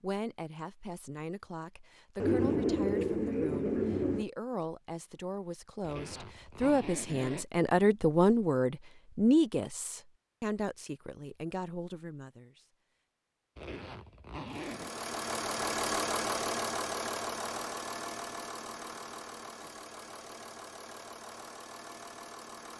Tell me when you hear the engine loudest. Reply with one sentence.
The volume of the engine peaks at 16 seconds.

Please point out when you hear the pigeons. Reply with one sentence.
You can hear the pigeons from 2.1 to 4.2 s.